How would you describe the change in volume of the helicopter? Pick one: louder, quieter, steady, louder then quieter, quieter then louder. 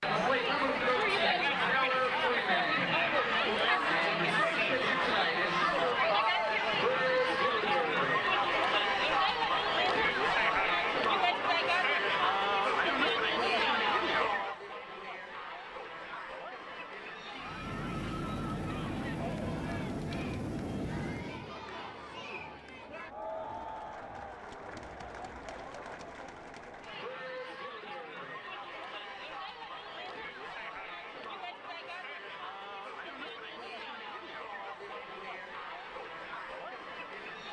steady.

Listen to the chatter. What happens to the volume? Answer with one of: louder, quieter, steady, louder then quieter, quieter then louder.
quieter.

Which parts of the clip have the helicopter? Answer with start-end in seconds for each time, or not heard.
17.4-21.6.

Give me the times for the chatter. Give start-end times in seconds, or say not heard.
0.0-37.4.